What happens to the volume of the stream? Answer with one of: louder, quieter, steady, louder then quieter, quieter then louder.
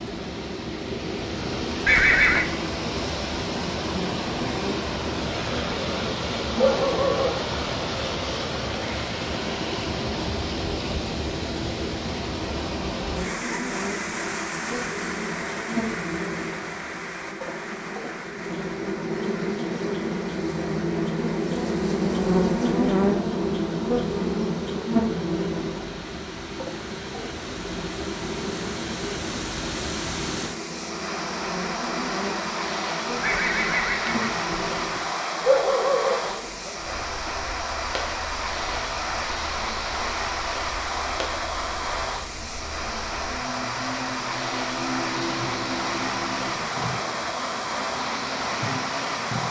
quieter then louder.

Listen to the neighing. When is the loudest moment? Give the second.
2 s.